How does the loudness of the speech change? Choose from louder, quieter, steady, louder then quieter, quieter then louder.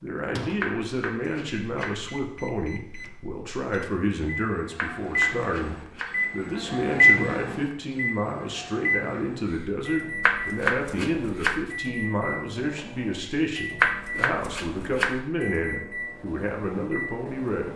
steady.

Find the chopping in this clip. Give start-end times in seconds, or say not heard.
0.6-2.0, 4.8-6.2, 10.2-11.7, 13.8-15.2.